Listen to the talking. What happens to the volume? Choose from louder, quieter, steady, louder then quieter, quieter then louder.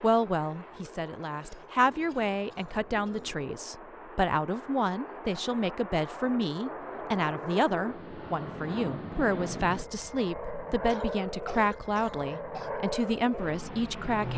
steady.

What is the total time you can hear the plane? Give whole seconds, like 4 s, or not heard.
14 s.